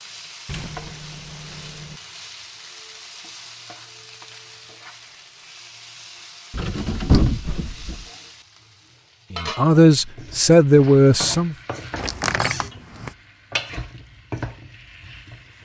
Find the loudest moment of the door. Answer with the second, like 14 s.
7 s.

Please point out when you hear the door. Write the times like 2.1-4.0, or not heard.
0.5-2.0, 6.5-8.1, 11.9-13.1.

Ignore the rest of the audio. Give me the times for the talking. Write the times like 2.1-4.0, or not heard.
9.3-11.6.